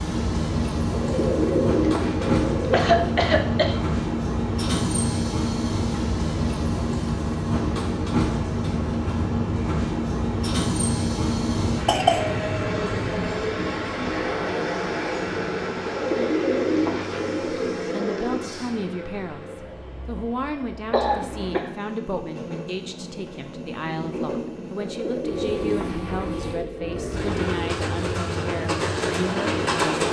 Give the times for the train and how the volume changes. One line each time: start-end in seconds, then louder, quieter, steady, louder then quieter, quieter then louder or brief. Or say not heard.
0.0-30.0 quieter then louder.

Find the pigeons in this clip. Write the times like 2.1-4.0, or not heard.
0.9-3.2, 15.8-18.4, 24.8-27.5.